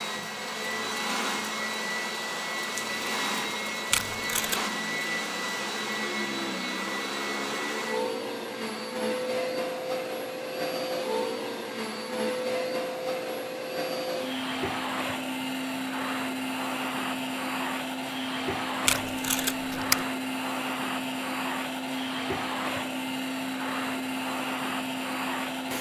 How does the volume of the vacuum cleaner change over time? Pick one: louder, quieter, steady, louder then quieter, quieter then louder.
steady.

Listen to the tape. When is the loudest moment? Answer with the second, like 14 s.
20 s.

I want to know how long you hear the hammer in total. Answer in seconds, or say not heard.
not heard.